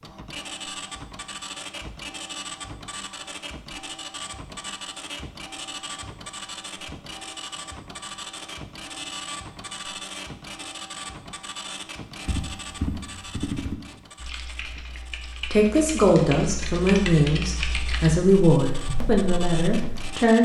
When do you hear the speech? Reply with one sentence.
You can hear the speech from 15.5 to 20.4 s.